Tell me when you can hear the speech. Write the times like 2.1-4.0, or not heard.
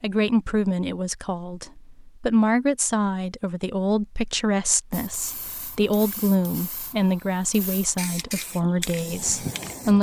0.0-9.9.